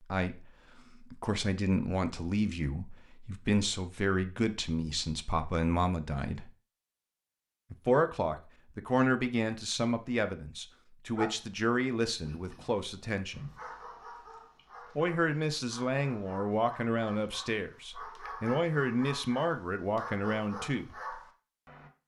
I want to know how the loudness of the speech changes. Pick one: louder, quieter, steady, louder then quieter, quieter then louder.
steady.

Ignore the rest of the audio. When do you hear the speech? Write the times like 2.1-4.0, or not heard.
0.1-6.5, 7.7-13.4, 14.9-20.9.